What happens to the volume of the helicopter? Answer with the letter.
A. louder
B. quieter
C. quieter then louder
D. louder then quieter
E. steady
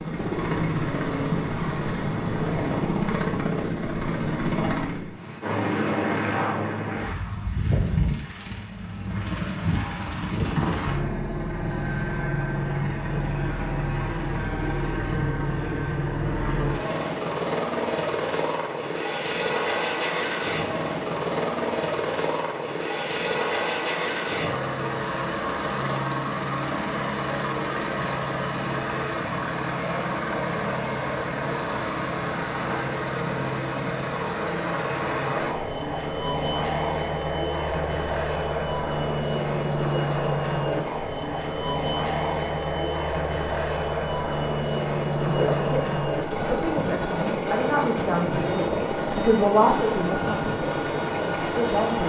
E.